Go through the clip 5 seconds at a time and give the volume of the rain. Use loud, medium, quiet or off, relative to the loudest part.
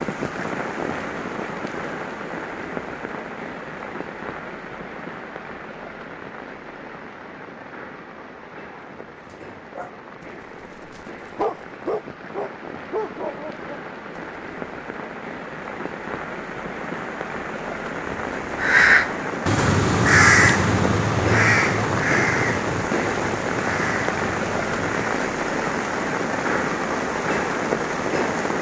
medium, quiet, quiet, medium, loud, loud.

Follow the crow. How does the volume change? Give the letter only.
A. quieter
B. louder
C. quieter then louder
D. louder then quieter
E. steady
A.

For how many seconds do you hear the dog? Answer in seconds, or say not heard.
6 s.